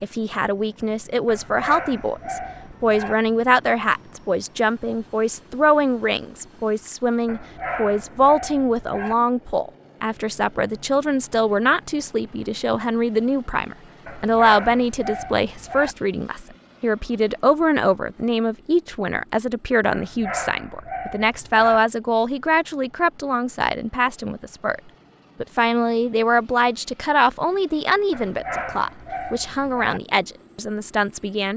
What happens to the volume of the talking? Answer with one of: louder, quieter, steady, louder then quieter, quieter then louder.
steady.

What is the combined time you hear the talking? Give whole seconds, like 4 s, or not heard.
31 s.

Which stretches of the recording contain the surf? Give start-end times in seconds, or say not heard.
not heard.